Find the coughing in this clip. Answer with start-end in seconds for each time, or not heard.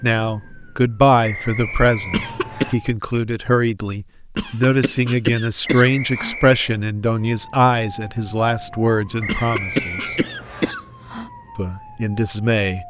2.1-2.7, 4.3-6.3, 9.2-11.3.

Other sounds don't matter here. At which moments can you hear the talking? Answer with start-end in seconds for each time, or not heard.
0.0-10.2, 11.6-12.8.